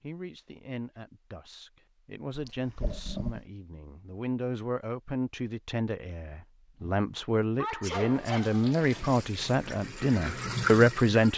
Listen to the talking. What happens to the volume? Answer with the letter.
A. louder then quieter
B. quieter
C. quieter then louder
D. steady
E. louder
E.